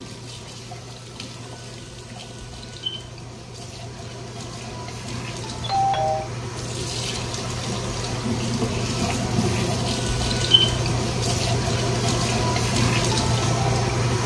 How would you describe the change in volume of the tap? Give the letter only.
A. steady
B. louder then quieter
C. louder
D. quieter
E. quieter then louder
C.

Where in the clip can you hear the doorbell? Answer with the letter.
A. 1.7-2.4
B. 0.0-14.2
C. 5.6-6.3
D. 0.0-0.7
C.